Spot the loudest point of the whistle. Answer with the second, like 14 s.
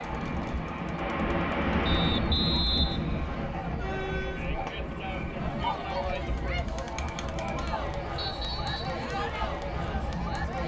3 s.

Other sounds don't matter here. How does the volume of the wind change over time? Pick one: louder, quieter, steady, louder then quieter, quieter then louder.
quieter.